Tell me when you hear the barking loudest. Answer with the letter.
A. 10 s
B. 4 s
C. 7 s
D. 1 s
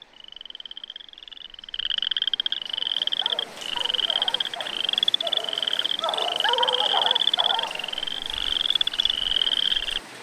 C.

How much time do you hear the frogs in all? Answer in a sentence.
You can hear the frogs for 10 seconds altogether.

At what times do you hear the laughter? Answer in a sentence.
You can't hear the laughter here.